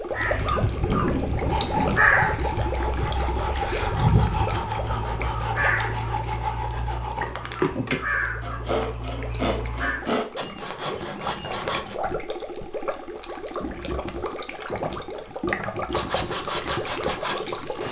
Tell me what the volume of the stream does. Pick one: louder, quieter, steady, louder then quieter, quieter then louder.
quieter then louder.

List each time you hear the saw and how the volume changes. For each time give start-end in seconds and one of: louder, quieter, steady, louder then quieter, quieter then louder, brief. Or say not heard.
1.4-11.9 steady
15.9-17.8 brief.